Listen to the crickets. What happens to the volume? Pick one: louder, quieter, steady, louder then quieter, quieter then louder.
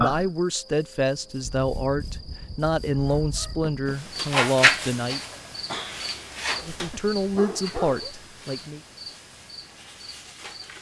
louder then quieter.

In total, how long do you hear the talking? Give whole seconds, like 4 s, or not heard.
7 s.